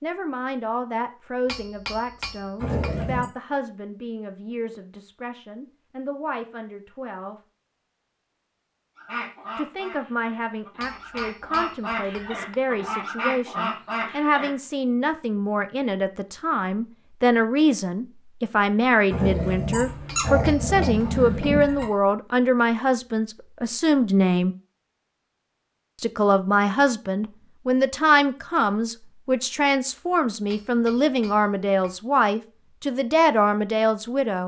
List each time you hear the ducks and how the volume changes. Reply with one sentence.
You can hear the ducks from 8.9 to 14.6 s, getting louder.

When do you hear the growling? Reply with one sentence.
You can hear the growling from 2.6 to 3.3 s and from 19.1 to 21.9 s.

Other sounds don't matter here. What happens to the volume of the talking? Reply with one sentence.
The loudness of the talking goes up.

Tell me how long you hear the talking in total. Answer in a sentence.
You can hear the talking for 31 seconds altogether.